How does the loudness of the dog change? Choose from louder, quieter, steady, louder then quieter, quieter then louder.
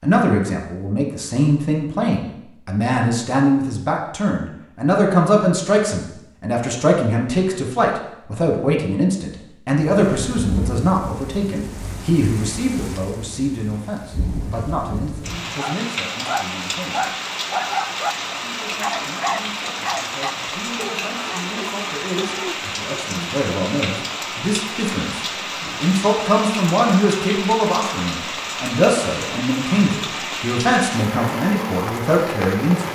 quieter.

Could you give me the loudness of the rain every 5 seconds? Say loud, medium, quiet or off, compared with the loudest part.
off, off, medium, loud, loud, loud, loud.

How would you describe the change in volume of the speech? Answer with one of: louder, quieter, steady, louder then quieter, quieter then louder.
quieter then louder.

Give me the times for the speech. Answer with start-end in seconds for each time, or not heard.
0.0-17.1, 18.4-32.9.